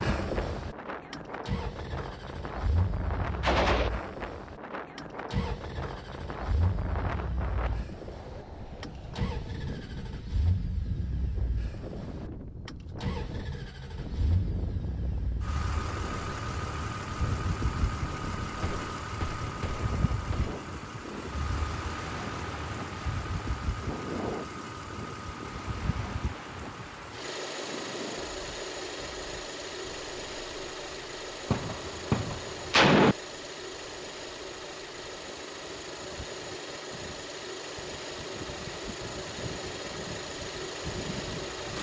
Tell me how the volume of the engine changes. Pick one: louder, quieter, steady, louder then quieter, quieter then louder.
steady.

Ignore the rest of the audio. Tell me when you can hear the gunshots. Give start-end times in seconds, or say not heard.
3.4-3.9, 18.6-20.6, 31.5-33.1.